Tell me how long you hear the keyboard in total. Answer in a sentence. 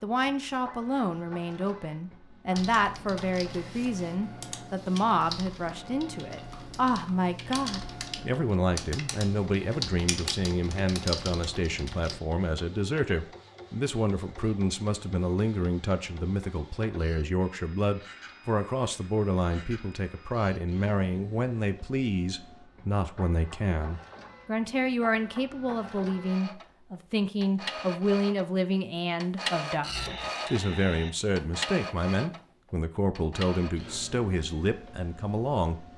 You can hear the keyboard for 10 seconds altogether.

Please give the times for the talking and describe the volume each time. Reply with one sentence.
The talking can be heard from 0.0 to 35.8 s, at a steady volume.